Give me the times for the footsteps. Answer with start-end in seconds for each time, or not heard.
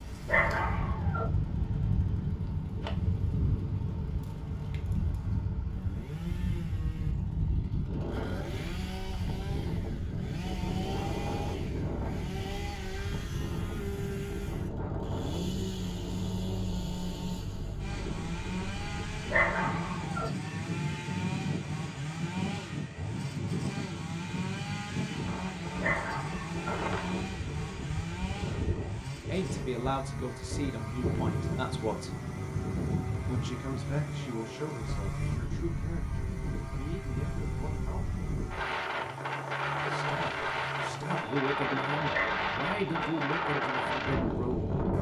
not heard.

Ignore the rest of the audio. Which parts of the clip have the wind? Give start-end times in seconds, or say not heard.
0.0-44.9.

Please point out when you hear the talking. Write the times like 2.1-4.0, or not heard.
29.2-32.2, 33.2-38.2, 39.9-44.8.